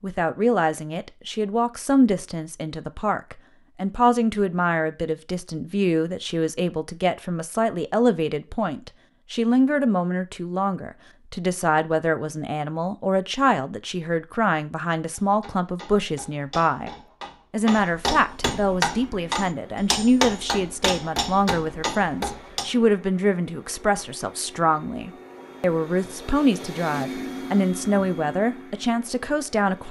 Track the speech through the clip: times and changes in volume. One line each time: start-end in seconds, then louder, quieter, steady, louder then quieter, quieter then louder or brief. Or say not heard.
0.0-16.9 steady
17.5-29.8 steady.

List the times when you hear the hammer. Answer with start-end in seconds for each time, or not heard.
15.1-22.7.